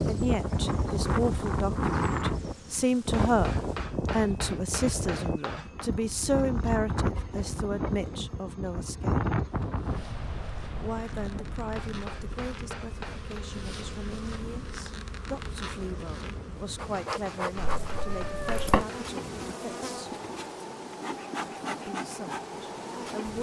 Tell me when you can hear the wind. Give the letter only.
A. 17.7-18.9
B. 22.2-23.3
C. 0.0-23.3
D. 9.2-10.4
C.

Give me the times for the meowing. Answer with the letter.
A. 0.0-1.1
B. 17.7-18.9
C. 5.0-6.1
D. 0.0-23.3
B.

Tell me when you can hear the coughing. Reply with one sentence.
The coughing can't be heard in this clip.